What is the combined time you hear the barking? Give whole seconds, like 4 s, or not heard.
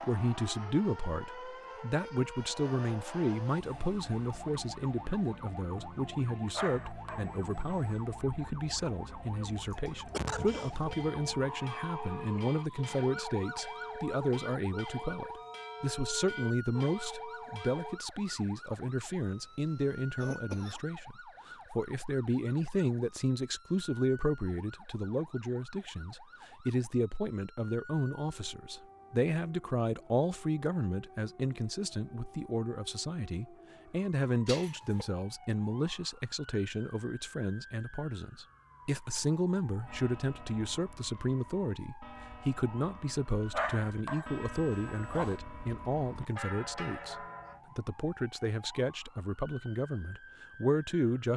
3 s.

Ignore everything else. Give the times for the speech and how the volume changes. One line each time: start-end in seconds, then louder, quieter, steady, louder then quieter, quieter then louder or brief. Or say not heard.
0.0-51.3 steady.